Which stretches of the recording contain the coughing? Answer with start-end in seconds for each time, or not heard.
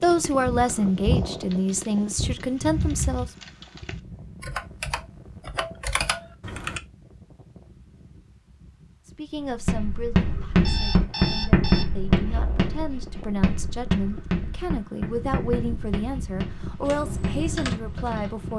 not heard.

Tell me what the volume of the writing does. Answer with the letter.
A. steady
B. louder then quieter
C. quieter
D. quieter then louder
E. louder
C.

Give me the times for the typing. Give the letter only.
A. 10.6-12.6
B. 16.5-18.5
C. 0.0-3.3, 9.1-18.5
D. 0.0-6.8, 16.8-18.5
D.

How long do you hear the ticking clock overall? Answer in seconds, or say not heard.
not heard.